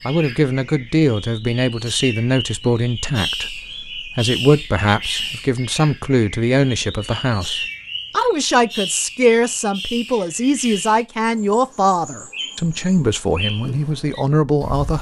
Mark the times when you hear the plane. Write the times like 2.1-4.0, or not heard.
not heard.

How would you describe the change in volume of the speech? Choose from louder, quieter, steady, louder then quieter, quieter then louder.
steady.